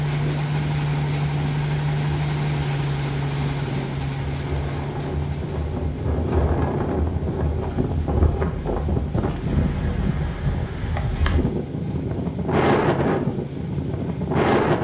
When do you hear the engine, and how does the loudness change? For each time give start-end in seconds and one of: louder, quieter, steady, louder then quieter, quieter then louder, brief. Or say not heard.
0.0-14.7 quieter.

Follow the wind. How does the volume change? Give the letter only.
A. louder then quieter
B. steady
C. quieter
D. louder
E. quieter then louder
D.